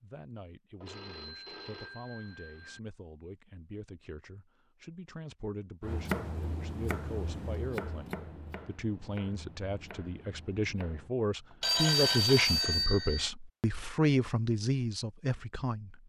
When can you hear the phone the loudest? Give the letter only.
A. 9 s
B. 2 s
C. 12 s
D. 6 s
C.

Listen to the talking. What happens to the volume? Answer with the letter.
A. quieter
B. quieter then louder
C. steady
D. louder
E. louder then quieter
D.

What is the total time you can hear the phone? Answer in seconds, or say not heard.
4 s.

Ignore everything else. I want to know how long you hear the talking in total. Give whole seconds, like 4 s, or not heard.
16 s.